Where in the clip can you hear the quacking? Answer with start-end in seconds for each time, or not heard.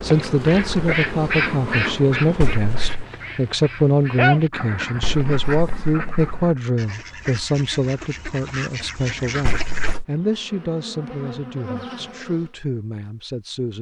0.1-9.9.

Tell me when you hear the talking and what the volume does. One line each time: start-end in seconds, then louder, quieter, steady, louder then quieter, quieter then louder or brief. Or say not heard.
0.0-13.7 quieter.